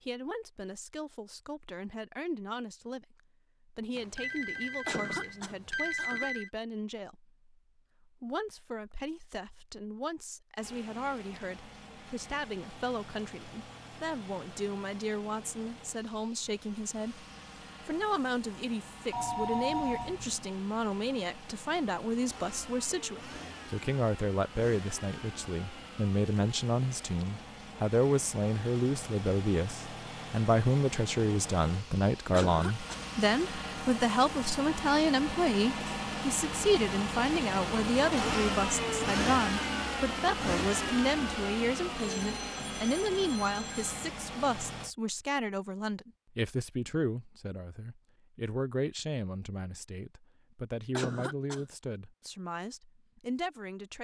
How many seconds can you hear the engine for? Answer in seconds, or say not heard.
34 s.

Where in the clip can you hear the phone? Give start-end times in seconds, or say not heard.
4.0-6.5, 19.1-20.4, 42.0-44.0.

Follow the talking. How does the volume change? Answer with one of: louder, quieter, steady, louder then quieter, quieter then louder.
louder then quieter.